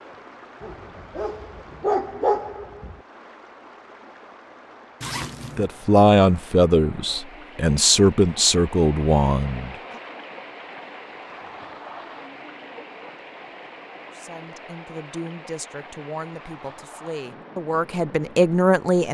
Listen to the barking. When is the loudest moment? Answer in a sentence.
The loudest moment of the barking is at 2 seconds.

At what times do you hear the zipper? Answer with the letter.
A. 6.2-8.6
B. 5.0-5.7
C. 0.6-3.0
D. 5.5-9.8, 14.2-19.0
B.